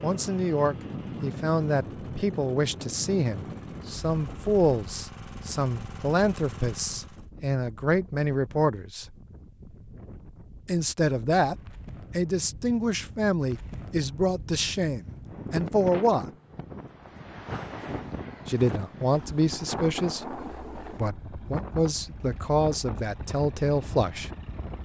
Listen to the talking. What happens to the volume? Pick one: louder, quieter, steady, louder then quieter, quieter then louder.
steady.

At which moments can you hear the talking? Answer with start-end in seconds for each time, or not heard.
0.0-9.1, 10.7-16.2, 18.4-24.3.